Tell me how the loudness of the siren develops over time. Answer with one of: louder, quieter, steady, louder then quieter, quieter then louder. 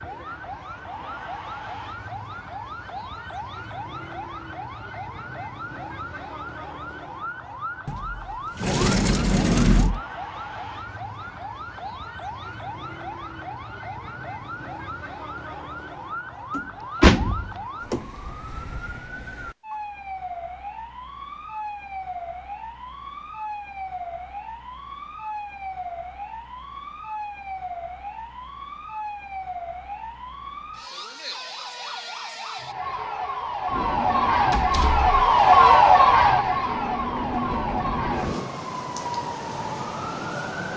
louder.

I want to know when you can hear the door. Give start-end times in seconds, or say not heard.
7.8-10.0, 16.6-18.1, 34.5-35.2.